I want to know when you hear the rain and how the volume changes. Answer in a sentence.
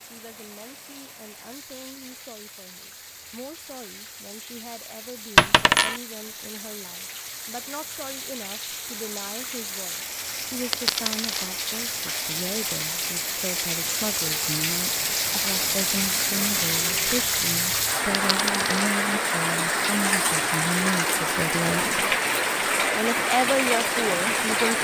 You can hear the rain from 0.0 to 24.7 s, getting louder.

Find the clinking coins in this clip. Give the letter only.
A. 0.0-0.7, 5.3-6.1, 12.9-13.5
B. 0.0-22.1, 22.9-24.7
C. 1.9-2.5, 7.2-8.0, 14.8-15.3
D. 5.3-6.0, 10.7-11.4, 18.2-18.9
D.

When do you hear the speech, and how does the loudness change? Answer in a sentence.
You can hear the speech from 0.0 to 22.1 s, getting louder; and briefly from 22.9 to 24.7 s.